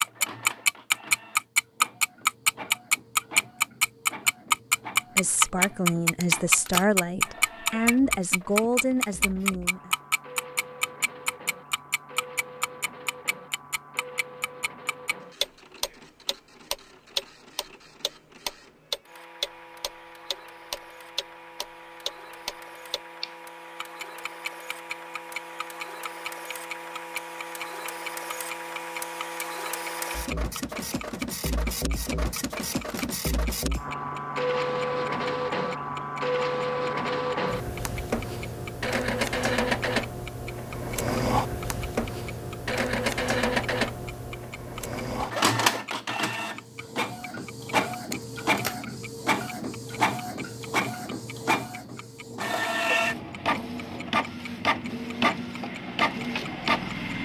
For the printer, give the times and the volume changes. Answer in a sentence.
The printer can be heard from 0.0 to 57.2 s, getting louder.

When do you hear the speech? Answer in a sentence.
The speech can be heard from 5.2 to 9.9 s.